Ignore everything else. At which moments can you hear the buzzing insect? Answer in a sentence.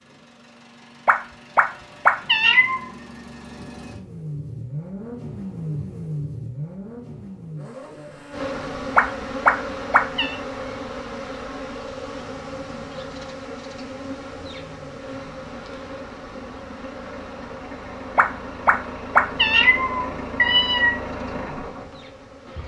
The buzzing insect can be heard from 8.3 to 22.6 s.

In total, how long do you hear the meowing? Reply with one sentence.
You can hear the meowing for 6 seconds altogether.